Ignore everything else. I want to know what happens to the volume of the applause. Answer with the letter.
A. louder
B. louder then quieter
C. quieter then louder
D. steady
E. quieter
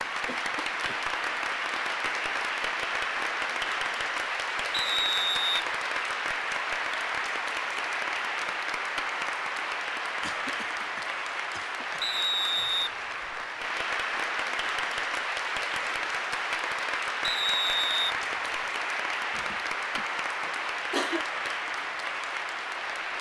D.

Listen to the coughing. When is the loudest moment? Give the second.
21 s.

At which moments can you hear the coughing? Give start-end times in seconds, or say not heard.
0.2-1.1, 10.2-12.1, 19.3-21.2.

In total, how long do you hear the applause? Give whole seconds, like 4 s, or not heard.
23 s.